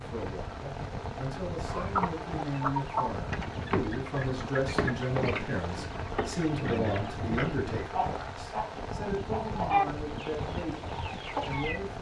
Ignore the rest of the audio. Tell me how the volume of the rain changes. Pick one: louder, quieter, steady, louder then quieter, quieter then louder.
steady.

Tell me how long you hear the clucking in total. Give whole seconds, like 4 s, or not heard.
10 s.